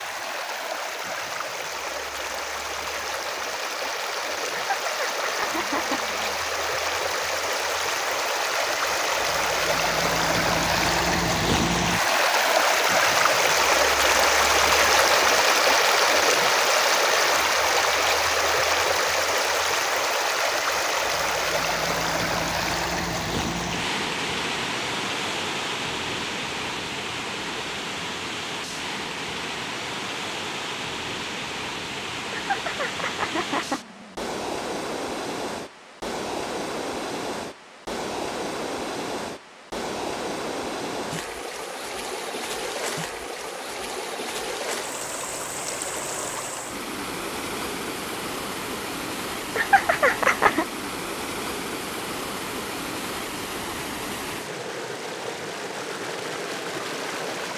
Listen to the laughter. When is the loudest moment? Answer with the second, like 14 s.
50 s.